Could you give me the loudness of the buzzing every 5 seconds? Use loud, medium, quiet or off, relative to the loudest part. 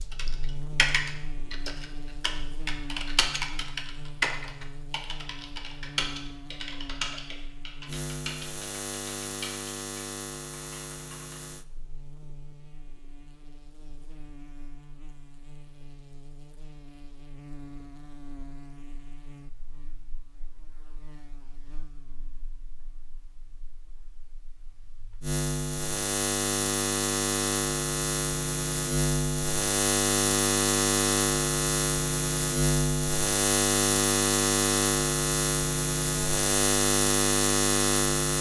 quiet, quiet, quiet, quiet, quiet, loud, loud, loud.